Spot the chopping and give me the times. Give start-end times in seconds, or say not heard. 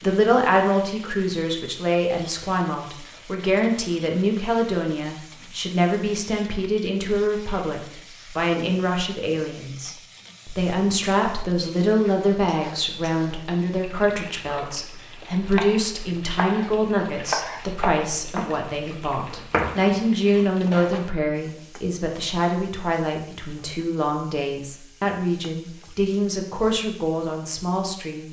14.4-21.0.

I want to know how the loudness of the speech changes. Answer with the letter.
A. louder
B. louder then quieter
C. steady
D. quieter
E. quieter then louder
C.